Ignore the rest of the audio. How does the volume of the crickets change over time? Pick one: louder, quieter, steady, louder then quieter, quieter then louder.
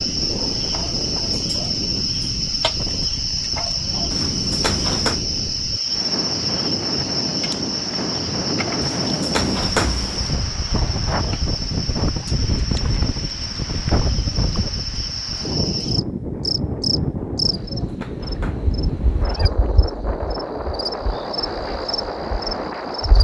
quieter.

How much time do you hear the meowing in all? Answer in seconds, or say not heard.
5 s.